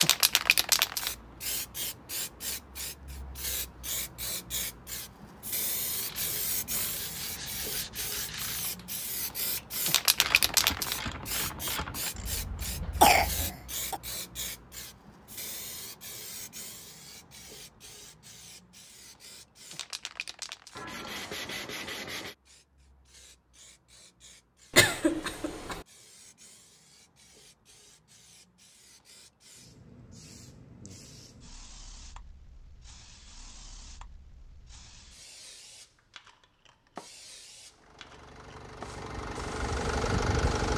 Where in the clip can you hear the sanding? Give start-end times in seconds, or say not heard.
6.1-8.6, 20.8-22.4.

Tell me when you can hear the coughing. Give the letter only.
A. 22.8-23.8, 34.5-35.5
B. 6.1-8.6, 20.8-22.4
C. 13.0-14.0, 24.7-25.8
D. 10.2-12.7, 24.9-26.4
C.